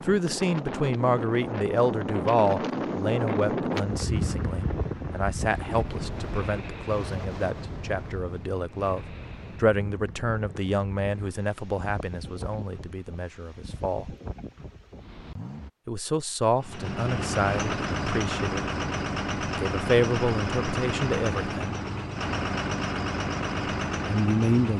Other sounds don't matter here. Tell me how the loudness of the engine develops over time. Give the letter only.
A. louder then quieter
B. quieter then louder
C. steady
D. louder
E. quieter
C.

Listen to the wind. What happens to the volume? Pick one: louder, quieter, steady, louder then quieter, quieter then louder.
quieter.